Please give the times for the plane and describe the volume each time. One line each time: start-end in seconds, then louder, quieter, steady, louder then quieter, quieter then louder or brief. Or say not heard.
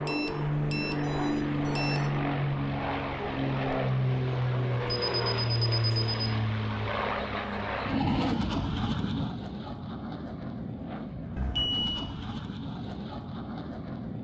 0.0-14.1 quieter.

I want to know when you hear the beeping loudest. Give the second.
12 s.